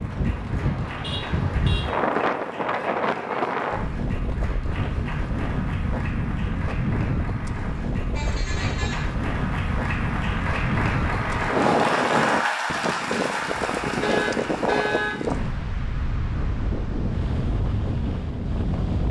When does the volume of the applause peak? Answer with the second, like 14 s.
12 s.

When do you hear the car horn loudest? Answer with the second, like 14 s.
15 s.